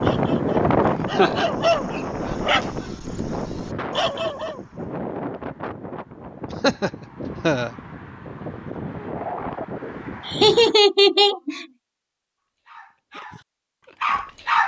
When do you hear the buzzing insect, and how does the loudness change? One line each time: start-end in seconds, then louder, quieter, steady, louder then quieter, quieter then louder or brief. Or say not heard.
not heard.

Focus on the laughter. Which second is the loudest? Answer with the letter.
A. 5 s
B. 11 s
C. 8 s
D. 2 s
B.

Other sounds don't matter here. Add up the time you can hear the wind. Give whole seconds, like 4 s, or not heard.
11 s.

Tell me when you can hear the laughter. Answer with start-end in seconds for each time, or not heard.
0.8-1.4, 6.6-7.7, 10.2-11.7.